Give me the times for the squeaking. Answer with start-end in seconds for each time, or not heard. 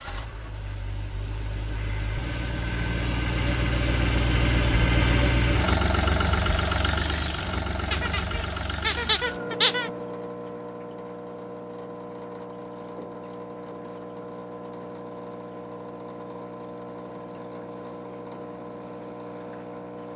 7.9-9.9.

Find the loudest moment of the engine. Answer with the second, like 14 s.
5 s.